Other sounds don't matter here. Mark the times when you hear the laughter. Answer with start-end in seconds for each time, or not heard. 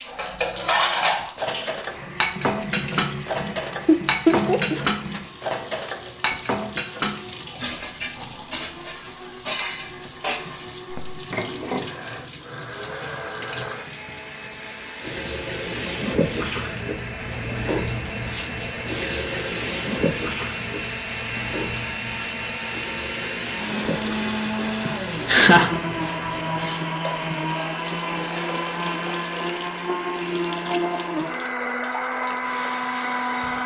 3.9-5.5, 24.9-25.7.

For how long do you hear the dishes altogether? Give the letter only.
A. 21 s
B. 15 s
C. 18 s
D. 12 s
D.